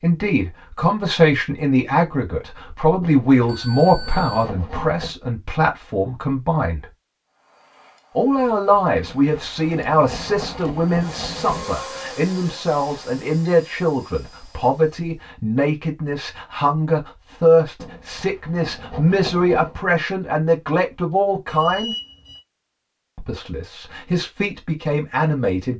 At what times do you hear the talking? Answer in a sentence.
You can hear the talking from 0.0 to 6.8 s, from 8.2 to 21.9 s and from 23.1 to 25.7 s.